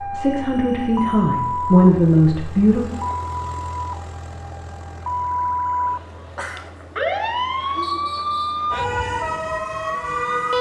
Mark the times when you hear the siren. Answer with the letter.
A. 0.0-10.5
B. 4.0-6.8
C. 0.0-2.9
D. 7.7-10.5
A.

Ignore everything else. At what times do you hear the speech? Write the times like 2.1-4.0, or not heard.
0.0-2.9.